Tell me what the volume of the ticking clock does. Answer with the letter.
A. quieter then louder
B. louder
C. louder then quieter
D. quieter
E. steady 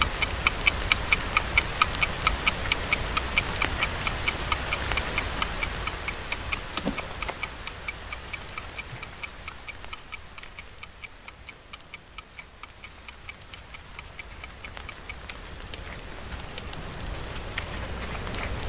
D.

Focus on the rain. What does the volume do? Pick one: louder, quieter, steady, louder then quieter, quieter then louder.
quieter then louder.